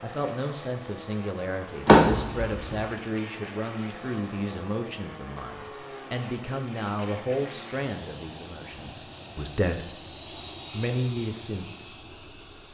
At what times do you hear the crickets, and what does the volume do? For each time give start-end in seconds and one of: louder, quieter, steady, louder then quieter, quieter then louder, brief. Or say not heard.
0.1-7.8 louder then quieter.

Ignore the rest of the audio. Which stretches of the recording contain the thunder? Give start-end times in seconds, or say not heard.
not heard.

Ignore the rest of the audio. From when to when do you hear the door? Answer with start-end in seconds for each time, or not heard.
1.9-2.8.